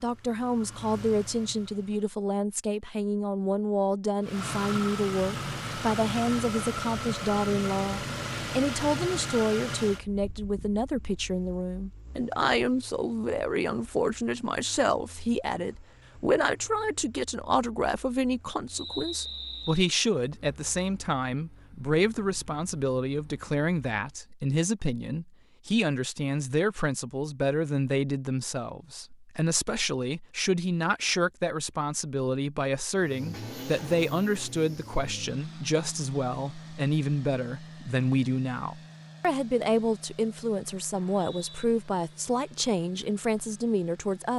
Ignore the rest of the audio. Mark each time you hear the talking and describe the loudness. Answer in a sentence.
You can hear the talking from 0.0 to 44.3 s, at a steady volume.